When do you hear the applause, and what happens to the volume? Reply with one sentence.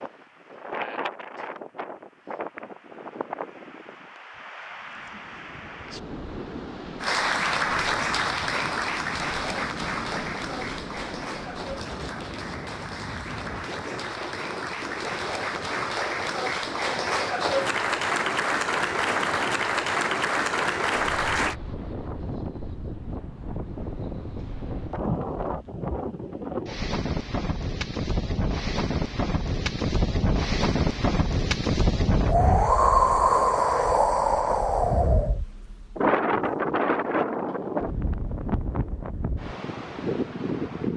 The applause can be heard from 7.0 to 21.6 s, getting quieter then louder.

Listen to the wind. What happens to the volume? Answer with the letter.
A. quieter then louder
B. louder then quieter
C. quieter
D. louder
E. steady
D.